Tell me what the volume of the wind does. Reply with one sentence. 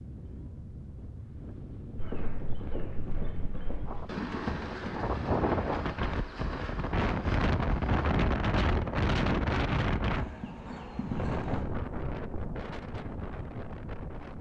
The loudness of the wind goes up, then down.